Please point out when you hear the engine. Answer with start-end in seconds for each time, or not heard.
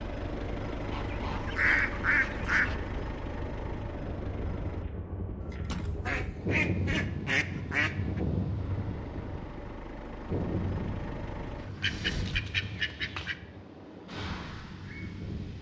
0.0-4.8, 8.6-12.4.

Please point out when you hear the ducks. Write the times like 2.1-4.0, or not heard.
0.9-2.8, 5.5-8.2, 11.8-13.3.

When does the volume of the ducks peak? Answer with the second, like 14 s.
2 s.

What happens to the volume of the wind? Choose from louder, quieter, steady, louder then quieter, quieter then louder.
louder then quieter.